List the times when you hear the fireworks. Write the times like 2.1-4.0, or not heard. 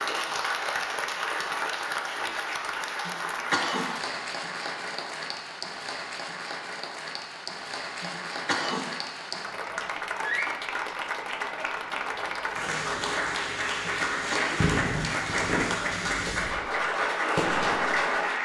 14.6-18.1.